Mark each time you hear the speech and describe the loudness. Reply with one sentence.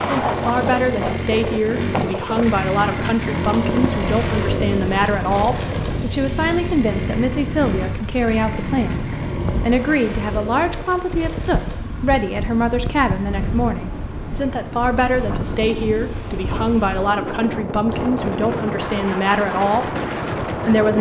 You can hear the speech from 0.0 to 20.9 s, at a steady volume.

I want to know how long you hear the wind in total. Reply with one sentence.
You can hear the wind for 21 seconds altogether.